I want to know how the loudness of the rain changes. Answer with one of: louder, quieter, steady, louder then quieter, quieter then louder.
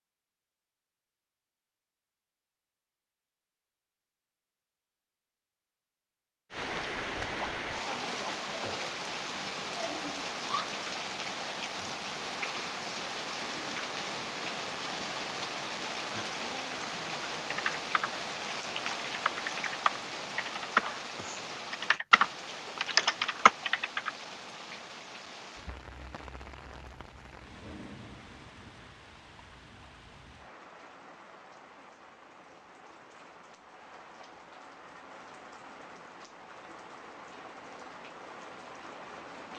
quieter.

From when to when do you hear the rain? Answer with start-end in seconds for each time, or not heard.
6.5-39.5.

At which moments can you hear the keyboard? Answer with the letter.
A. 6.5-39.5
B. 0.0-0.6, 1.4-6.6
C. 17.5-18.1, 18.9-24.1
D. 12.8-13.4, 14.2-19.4
C.